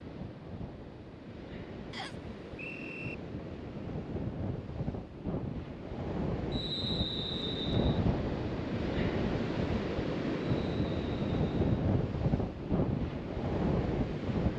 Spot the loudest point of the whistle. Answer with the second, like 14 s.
7 s.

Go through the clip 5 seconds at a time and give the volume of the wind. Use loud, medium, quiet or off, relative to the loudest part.
medium, loud, loud.